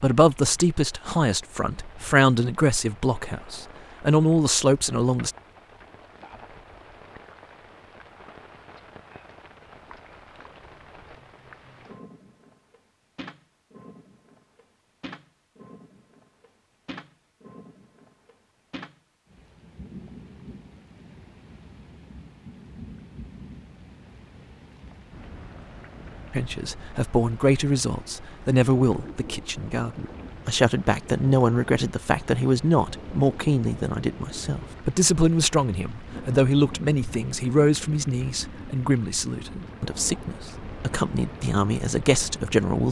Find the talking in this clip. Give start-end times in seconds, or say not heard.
0.0-5.3, 26.3-42.8.